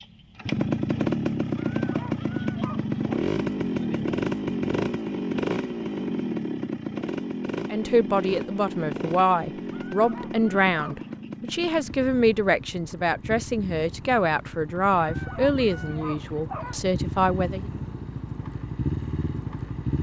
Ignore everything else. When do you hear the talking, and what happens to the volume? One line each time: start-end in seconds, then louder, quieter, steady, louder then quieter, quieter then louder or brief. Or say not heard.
7.7-17.6 steady.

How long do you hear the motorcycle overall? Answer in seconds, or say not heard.
20 s.